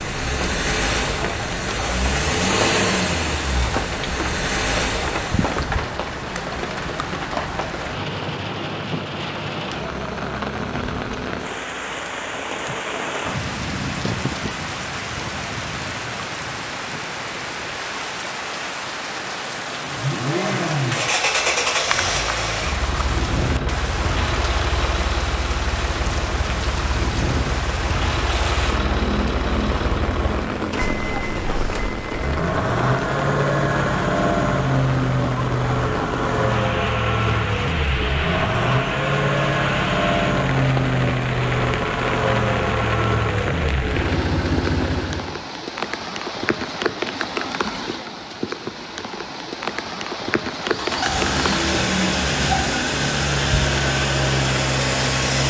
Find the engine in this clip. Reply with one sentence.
You can hear the engine from 0.0 to 5.7 s, from 19.9 to 45.4 s and from 50.6 to 55.4 s.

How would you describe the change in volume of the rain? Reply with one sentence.
The loudness of the rain stays about the same.